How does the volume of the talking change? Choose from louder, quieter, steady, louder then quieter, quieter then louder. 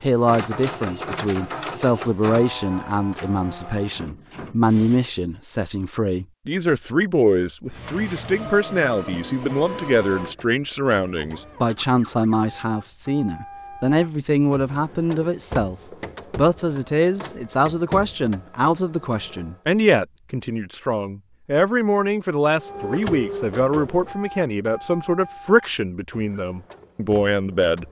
steady.